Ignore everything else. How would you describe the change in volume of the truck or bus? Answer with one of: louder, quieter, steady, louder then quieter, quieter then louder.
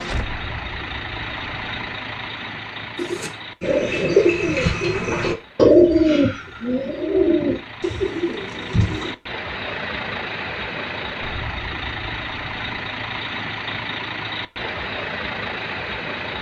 quieter then louder.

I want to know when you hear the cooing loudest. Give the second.
6 s.